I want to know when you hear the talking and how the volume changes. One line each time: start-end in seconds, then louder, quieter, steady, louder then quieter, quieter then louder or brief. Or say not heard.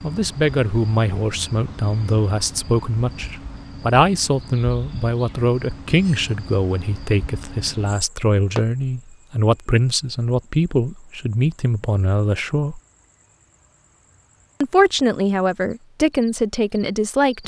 0.0-12.8 steady
14.6-17.4 brief.